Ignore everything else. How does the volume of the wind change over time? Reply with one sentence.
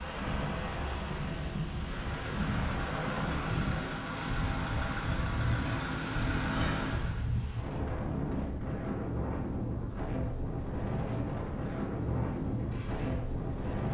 The volume of the wind stays about the same.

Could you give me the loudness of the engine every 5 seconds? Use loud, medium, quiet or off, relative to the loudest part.
loud, loud, medium.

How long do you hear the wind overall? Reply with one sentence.
You can hear the wind for 14 seconds altogether.